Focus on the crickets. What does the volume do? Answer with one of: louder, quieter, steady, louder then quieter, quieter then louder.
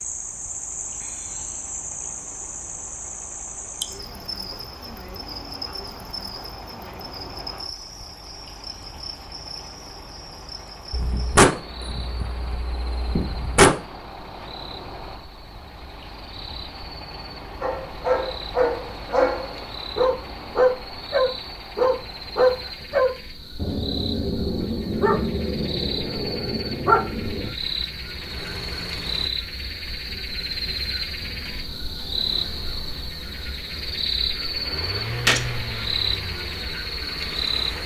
quieter then louder.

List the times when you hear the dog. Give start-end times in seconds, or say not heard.
17.6-27.5.